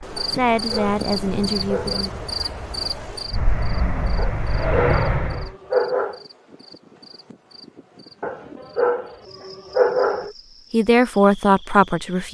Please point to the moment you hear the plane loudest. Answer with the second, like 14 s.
5 s.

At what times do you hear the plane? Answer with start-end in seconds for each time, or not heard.
0.0-5.5.